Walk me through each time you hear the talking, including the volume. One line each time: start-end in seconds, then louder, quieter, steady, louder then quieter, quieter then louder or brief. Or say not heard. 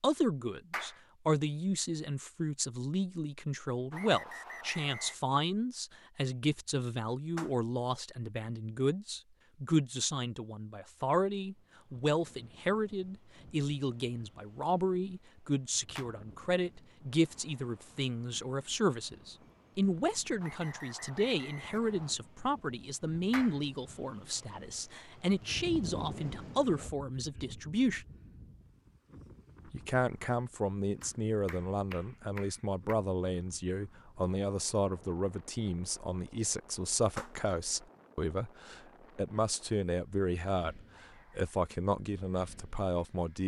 0.0-28.1 steady
29.7-43.4 steady.